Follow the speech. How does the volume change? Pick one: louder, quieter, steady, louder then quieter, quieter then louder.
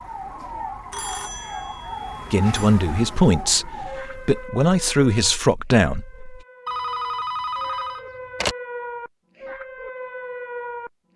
quieter then louder.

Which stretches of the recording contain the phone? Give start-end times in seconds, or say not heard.
0.9-2.7, 6.7-8.6.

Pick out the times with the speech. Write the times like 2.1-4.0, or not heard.
2.3-6.4.